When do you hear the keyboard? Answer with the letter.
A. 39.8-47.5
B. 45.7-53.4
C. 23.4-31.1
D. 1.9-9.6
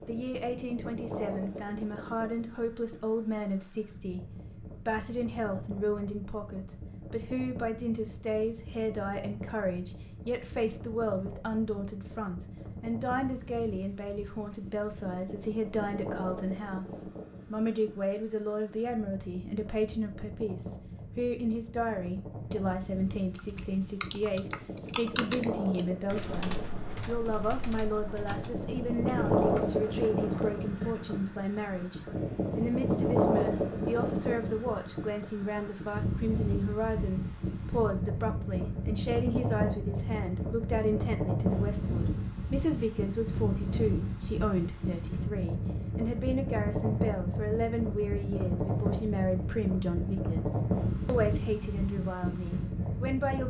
C.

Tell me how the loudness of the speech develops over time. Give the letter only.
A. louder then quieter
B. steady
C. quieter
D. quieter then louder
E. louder
B.